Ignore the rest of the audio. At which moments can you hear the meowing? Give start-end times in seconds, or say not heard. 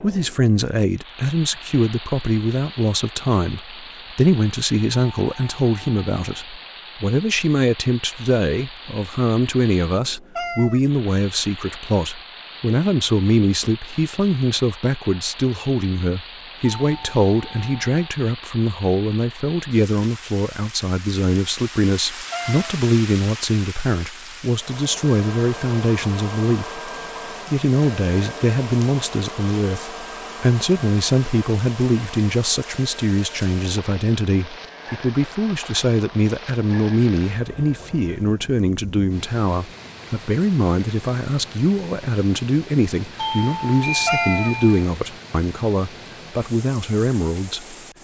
10.3-10.8, 22.3-22.8, 44.0-44.5.